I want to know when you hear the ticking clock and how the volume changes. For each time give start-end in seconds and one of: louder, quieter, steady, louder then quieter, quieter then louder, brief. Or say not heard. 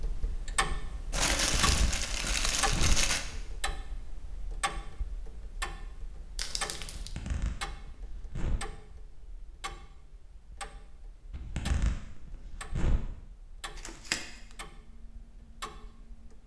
0.0-16.4 quieter.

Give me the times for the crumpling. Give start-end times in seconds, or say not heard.
1.1-3.2, 6.3-7.1, 13.8-14.2.